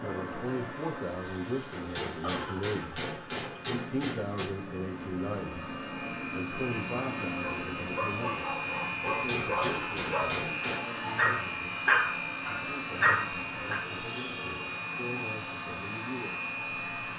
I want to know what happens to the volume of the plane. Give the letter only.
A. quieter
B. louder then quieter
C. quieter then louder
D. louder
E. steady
D.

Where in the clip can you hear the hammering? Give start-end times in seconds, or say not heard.
1.7-4.5, 9.1-10.9.